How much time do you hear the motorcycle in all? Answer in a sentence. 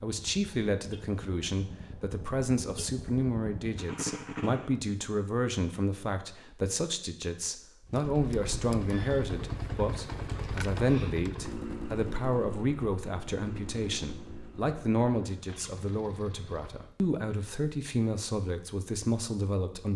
You can hear the motorcycle for 14 seconds altogether.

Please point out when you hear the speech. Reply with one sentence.
The speech can be heard from 0.0 to 19.9 s.